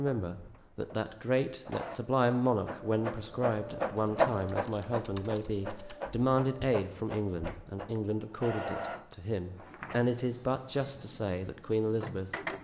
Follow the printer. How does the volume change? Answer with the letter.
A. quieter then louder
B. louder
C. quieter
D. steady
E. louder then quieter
E.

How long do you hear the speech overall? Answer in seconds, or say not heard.
12 s.